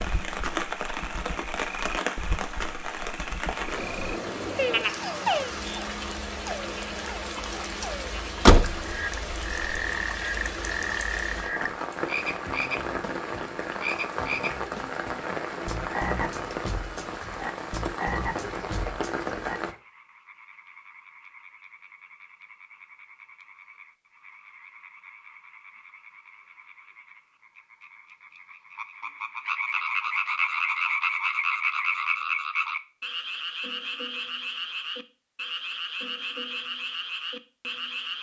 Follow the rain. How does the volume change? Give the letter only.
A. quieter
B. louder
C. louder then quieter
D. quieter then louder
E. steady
E.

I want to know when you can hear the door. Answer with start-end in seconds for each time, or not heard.
8.4-9.8.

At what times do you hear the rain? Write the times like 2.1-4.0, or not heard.
0.0-19.8.